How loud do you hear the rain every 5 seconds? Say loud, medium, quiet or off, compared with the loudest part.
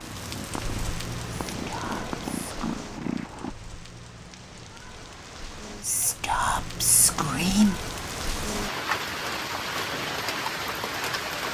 medium, loud, loud.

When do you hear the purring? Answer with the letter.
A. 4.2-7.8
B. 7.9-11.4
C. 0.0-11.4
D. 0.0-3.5
D.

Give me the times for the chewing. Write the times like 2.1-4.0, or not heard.
not heard.